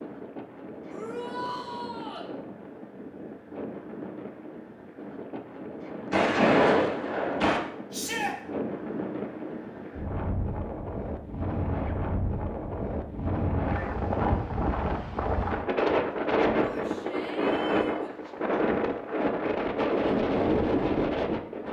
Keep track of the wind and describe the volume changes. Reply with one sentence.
The loudness of the wind goes up.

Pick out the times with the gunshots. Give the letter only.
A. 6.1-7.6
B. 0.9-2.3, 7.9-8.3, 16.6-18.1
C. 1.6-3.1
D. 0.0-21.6
A.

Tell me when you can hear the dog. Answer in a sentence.
The dog can't be heard in this clip.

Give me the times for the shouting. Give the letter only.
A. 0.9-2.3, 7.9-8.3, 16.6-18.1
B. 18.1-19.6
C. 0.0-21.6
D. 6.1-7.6
A.